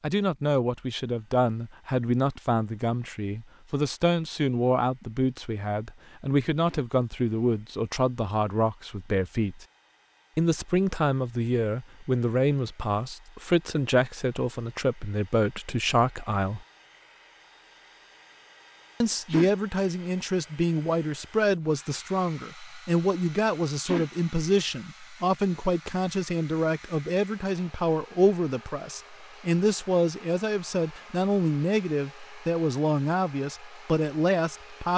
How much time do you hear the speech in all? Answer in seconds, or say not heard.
32 s.